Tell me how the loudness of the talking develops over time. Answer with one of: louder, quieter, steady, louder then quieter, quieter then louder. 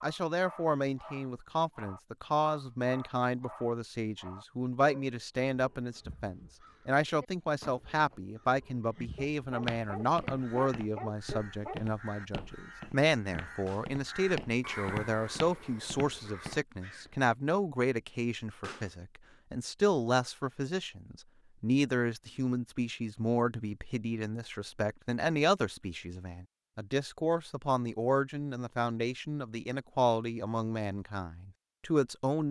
steady.